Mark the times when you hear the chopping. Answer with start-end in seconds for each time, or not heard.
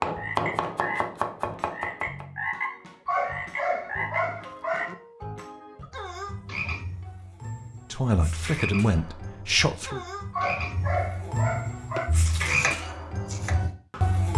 0.0-2.2, 11.9-14.2.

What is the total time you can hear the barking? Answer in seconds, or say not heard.
4 s.